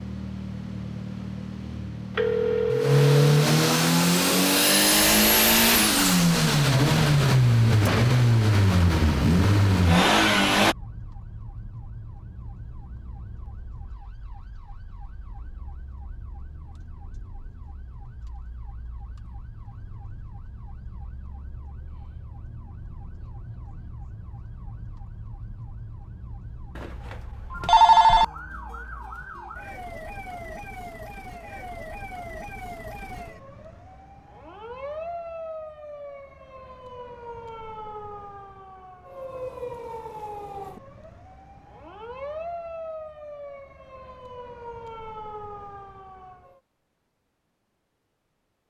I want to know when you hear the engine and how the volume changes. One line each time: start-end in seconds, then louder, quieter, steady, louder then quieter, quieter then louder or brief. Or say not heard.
0.0-10.8 louder.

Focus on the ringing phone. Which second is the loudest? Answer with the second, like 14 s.
28 s.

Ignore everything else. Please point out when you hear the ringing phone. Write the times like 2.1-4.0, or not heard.
2.1-3.4, 26.8-28.2.